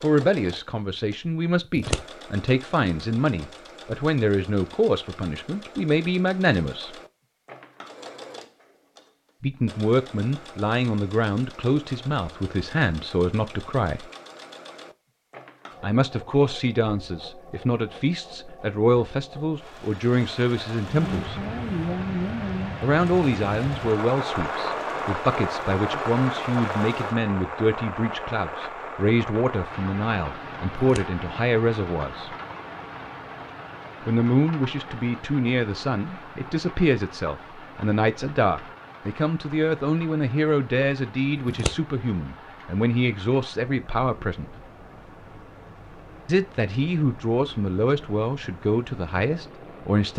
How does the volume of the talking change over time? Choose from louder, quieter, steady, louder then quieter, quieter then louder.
steady.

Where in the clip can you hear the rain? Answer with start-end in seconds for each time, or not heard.
20.9-50.1.